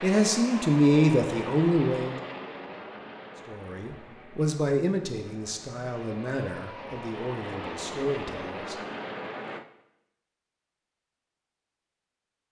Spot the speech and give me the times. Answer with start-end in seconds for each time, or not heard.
0.0-2.1, 3.5-8.8.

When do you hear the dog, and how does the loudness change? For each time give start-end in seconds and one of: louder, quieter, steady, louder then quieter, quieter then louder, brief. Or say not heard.
not heard.